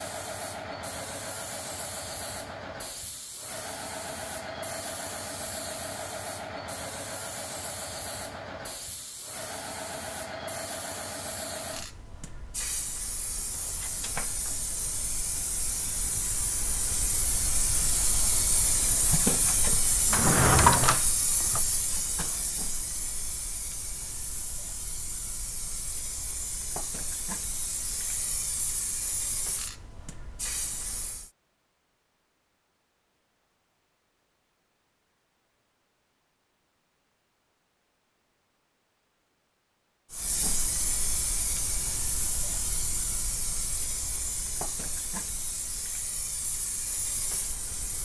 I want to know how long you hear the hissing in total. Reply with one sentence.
You can hear the hissing for 39 seconds altogether.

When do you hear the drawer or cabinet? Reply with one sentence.
The drawer or cabinet can be heard from 20.1 to 21.6 s.